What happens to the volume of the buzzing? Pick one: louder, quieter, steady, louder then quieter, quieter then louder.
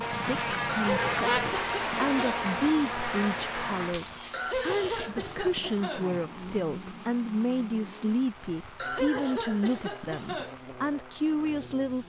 quieter.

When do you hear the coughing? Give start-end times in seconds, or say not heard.
0.7-2.5, 4.3-6.1, 8.8-10.6.